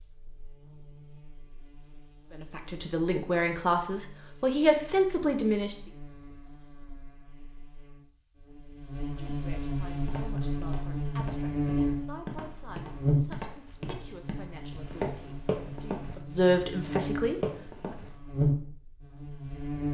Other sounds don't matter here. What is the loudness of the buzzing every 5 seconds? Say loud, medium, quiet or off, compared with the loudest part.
quiet, medium, loud, loud.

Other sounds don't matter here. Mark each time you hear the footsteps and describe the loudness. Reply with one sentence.
You can hear the footsteps from 9.9 to 18.1 s, getting louder.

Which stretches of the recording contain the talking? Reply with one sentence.
You can hear the talking from 2.3 to 5.8 s and from 9.2 to 17.9 s.